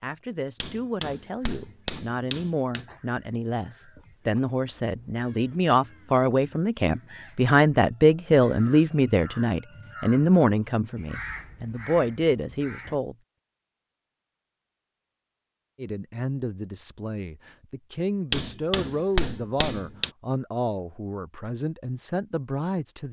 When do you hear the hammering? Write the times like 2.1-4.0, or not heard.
0.6-2.9, 18.3-20.1.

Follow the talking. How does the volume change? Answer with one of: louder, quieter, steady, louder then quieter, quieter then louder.
louder then quieter.